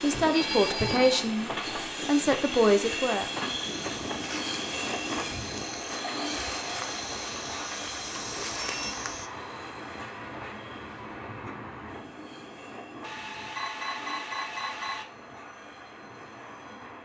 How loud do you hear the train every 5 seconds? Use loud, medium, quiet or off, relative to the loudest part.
loud, loud, medium, quiet.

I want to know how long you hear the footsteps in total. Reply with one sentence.
The footsteps can be heard for 6 seconds in total.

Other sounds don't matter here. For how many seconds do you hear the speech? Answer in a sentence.
You can hear the speech for 3 seconds altogether.